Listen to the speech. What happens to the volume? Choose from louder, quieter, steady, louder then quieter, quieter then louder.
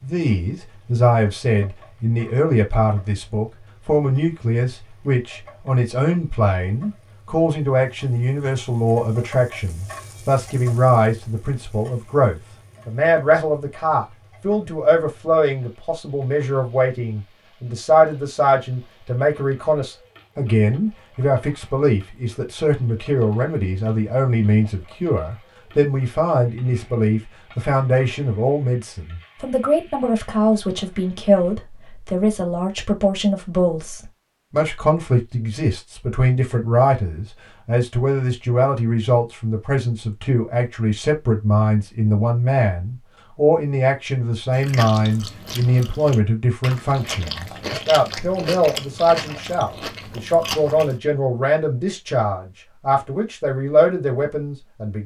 steady.